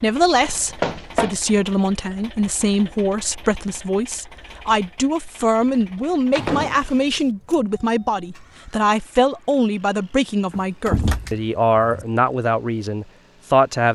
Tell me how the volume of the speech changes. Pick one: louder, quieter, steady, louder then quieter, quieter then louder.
steady.